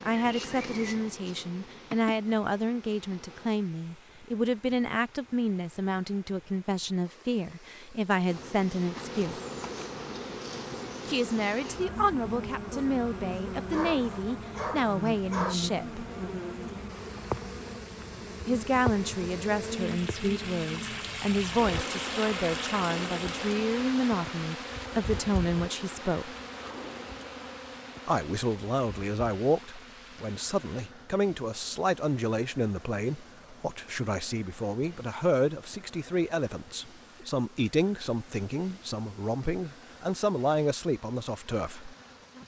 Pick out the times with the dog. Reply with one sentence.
The dog can be heard from 13.7 to 15.6 s.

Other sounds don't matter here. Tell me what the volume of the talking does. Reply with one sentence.
The volume of the talking stays about the same.